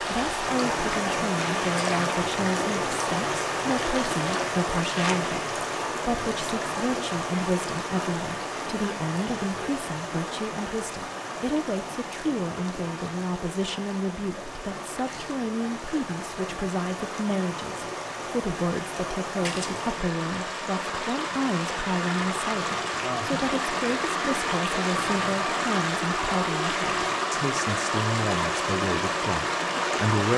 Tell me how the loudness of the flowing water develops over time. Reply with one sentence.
The volume of the flowing water goes down, then up.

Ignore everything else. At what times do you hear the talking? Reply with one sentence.
The talking can be heard from 0.0 to 30.3 s.